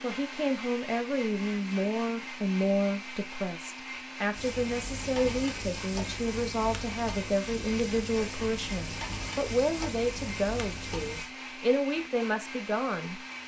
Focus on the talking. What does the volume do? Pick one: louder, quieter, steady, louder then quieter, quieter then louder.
steady.